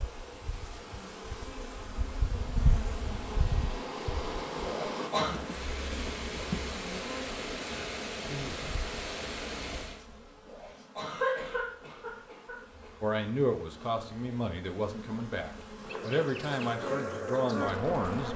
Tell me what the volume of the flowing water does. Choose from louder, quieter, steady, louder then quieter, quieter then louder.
louder.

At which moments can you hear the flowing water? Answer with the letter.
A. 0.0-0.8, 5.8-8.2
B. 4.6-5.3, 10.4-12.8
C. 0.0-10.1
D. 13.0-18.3
C.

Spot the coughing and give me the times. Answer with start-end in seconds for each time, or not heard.
4.6-5.3, 10.4-12.8.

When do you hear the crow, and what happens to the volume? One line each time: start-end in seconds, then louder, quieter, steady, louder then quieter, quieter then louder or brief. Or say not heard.
not heard.